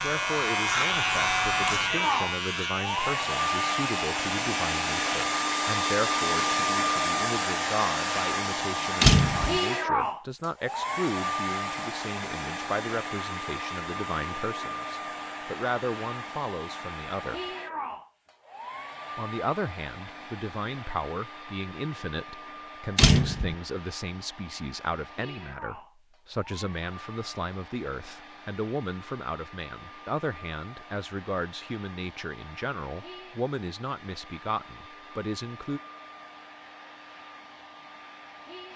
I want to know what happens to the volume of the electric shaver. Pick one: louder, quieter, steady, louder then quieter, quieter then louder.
quieter.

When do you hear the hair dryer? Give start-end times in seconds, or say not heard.
0.0-38.7.